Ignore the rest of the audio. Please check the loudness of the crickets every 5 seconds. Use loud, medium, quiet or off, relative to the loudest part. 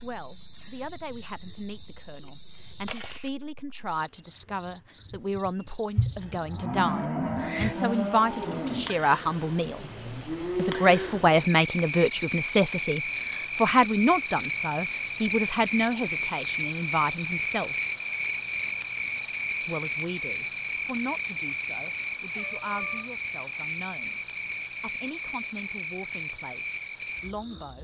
medium, medium, loud, loud, loud, medium.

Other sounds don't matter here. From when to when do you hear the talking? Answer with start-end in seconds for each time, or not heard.
0.0-9.9, 10.6-17.8, 19.6-27.7.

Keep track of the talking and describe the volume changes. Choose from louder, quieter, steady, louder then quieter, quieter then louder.
louder then quieter.